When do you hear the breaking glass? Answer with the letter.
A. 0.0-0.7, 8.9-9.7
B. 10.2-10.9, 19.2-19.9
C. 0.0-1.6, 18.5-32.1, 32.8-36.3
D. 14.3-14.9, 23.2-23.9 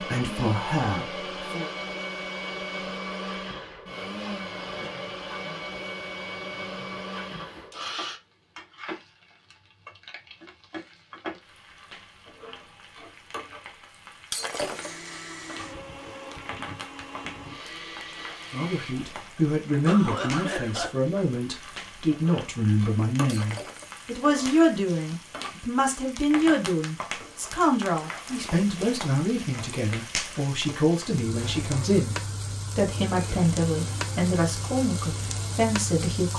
D.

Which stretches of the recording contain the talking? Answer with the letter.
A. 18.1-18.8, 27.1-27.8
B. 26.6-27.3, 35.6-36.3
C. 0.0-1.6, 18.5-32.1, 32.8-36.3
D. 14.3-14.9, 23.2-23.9
C.